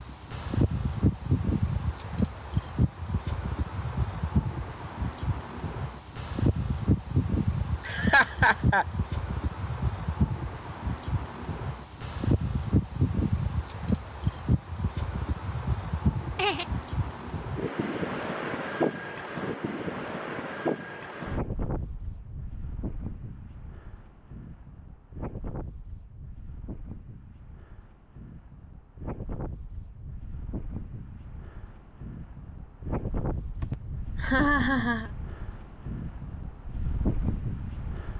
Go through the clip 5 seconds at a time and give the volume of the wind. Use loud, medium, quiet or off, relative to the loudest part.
loud, loud, loud, loud, medium, quiet, medium, medium.